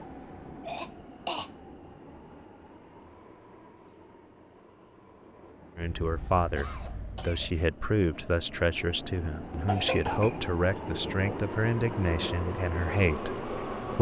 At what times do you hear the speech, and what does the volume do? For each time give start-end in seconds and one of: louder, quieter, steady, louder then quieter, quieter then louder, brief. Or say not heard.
5.8-13.9 steady.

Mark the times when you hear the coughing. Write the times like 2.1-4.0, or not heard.
0.7-1.5, 5.8-7.7, 9.7-11.3.